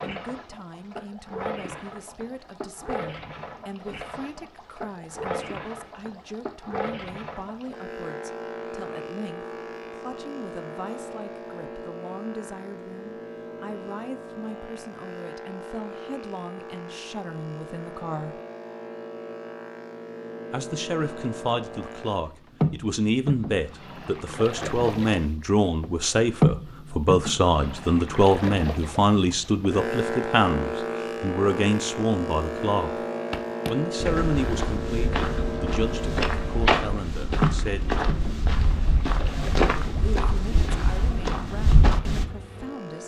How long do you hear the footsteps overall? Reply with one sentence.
The footsteps can be heard for 9 seconds in total.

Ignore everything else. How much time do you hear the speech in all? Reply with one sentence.
You can hear the speech for 38 seconds altogether.